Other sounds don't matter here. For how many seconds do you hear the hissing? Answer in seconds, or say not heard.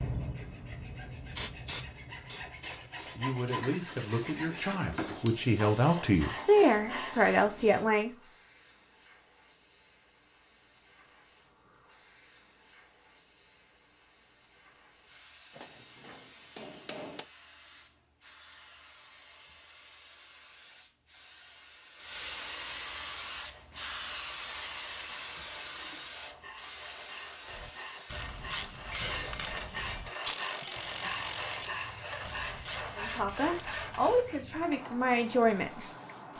36 s.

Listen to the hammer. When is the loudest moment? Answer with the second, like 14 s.
17 s.